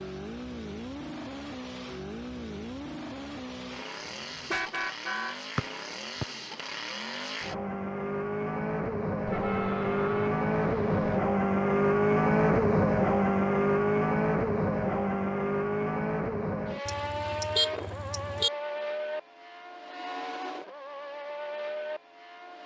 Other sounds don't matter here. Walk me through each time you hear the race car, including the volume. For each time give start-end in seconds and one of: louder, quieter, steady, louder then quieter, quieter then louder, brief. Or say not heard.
0.0-22.6 louder then quieter.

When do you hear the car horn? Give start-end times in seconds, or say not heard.
4.0-5.3, 9.2-11.2, 16.9-18.5.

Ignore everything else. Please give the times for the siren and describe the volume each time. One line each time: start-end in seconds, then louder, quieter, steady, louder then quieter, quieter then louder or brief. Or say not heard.
not heard.